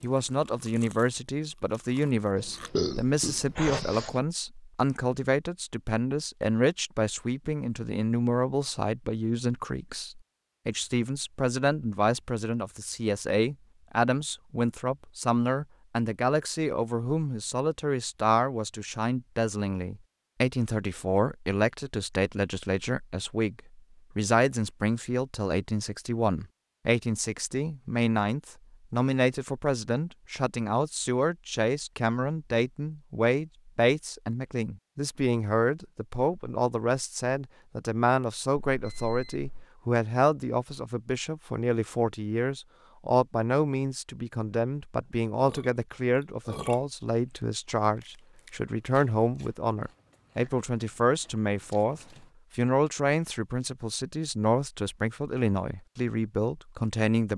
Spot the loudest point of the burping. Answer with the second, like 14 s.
3 s.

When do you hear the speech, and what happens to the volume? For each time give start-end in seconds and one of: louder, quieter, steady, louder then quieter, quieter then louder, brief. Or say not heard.
0.0-57.3 steady.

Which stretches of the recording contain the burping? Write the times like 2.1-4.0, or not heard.
2.4-4.2, 45.0-46.8.